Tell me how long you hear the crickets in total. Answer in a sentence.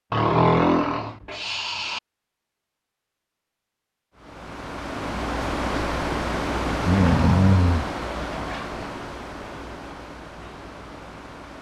You can't hear the crickets here.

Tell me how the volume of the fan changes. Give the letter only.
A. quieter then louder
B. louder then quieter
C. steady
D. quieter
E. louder
D.